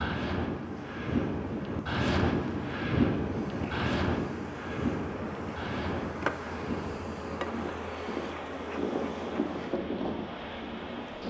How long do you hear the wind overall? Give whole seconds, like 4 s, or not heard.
11 s.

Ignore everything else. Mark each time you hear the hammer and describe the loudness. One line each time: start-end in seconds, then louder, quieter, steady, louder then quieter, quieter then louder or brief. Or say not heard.
not heard.